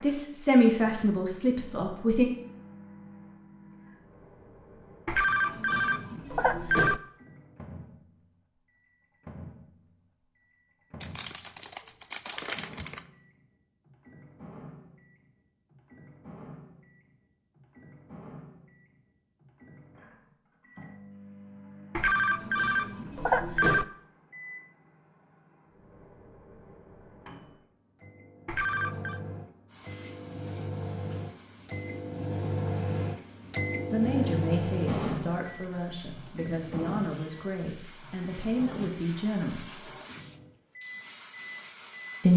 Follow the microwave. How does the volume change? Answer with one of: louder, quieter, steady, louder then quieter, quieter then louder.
louder.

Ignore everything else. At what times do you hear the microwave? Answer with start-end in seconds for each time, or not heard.
0.0-42.2.